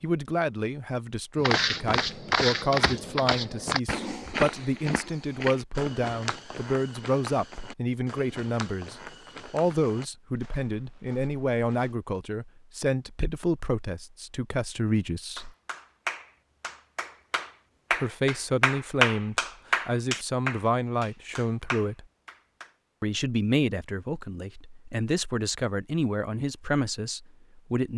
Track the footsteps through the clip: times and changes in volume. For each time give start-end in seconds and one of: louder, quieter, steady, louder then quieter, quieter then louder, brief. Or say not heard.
1.4-11.9 quieter.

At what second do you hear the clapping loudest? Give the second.
19 s.